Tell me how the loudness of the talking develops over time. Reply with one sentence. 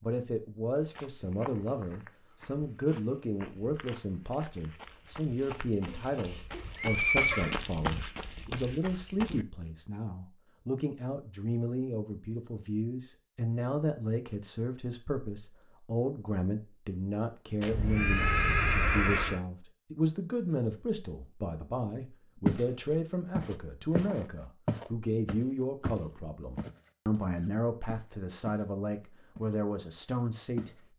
The volume of the talking stays about the same.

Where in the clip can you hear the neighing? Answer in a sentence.
You can hear the neighing from 5.5 to 7.5 s and from 17.6 to 19.4 s.